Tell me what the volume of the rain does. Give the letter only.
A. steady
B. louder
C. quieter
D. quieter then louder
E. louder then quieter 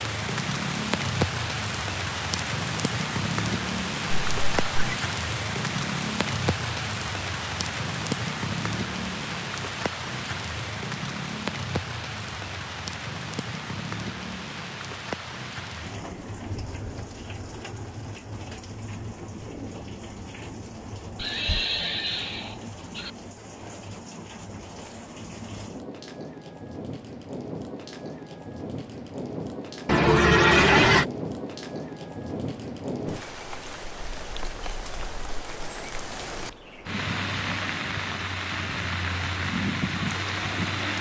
D.